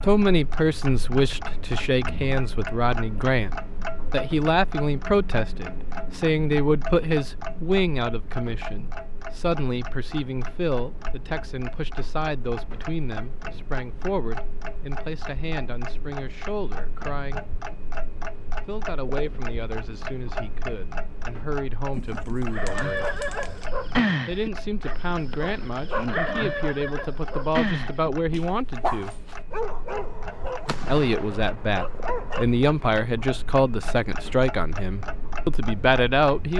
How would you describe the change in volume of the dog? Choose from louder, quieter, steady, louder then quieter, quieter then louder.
quieter.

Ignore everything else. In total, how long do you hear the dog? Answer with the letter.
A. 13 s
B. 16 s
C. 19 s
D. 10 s
D.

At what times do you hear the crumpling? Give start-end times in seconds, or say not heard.
21.9-23.6.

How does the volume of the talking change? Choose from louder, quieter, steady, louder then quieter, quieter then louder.
quieter then louder.